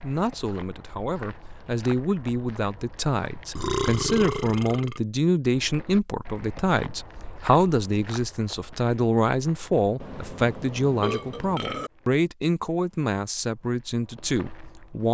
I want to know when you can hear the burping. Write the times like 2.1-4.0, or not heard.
3.5-5.0, 10.0-11.9.